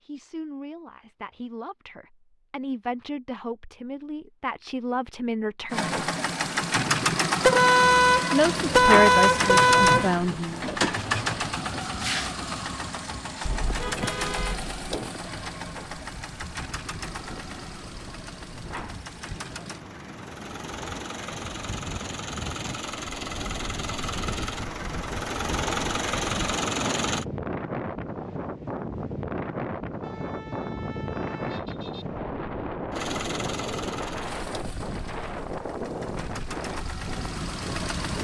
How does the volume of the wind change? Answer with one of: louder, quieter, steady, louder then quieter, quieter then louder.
louder.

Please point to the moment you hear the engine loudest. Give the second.
9 s.